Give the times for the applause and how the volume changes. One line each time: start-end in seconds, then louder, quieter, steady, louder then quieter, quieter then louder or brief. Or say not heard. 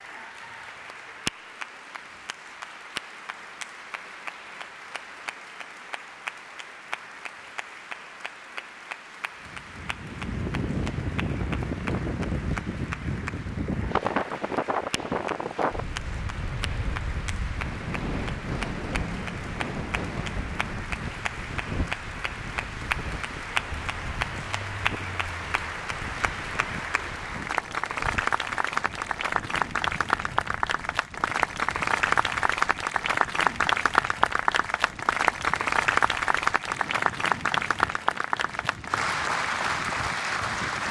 0.0-40.8 louder.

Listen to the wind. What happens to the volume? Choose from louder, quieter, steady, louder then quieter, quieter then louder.
quieter.